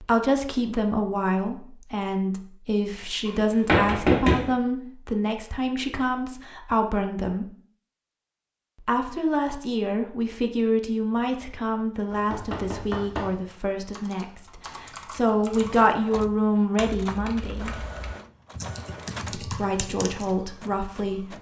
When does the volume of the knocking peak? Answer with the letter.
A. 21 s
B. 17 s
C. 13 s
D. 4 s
D.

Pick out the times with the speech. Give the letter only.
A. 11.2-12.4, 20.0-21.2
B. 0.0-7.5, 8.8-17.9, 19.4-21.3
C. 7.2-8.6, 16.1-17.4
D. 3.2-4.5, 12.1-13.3
B.